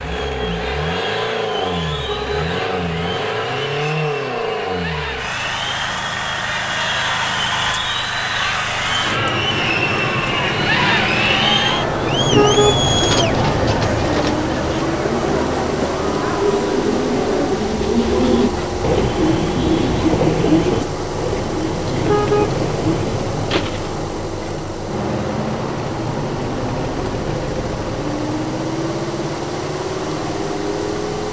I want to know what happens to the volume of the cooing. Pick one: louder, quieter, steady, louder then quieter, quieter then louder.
louder then quieter.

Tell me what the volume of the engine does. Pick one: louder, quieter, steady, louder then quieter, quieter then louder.
steady.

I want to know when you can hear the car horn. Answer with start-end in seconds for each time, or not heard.
1.9-3.6, 12.1-14.1, 21.9-23.6.